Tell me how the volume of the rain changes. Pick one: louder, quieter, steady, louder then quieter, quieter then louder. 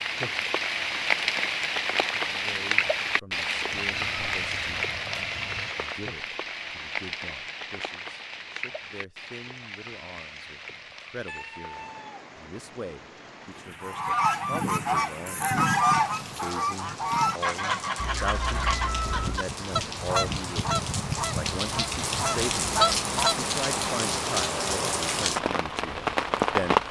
quieter then louder.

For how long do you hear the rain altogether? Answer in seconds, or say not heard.
27 s.